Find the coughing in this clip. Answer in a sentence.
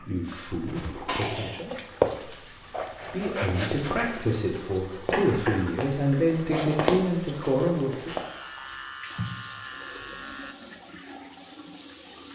The coughing can be heard from 1.1 to 1.6 s, from 5.1 to 6.2 s and from 9.1 to 10.1 s.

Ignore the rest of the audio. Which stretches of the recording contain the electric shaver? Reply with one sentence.
You can hear the electric shaver from 8.1 to 10.6 s.